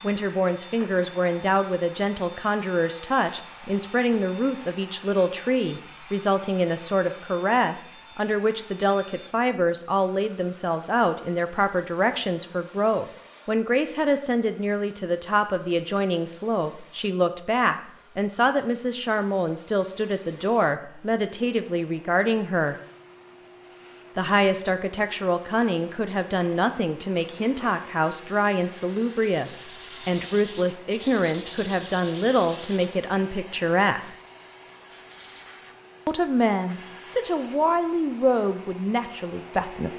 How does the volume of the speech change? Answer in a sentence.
The volume of the speech stays about the same.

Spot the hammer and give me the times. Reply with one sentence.
The hammer can't be heard in this clip.